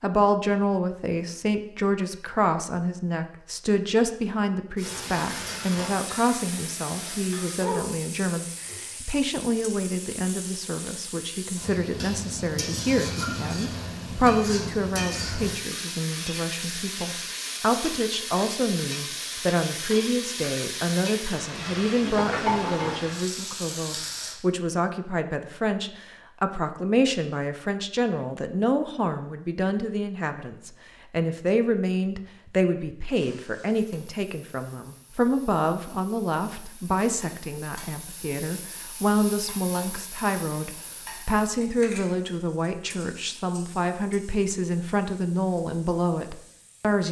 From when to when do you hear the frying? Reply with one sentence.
The frying can be heard from 4.8 to 24.4 s and from 33.1 to 47.0 s.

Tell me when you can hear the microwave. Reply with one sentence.
The microwave can't be heard in this clip.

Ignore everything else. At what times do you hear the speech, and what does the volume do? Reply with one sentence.
The speech can be heard from 0.0 to 47.0 s, at a steady volume.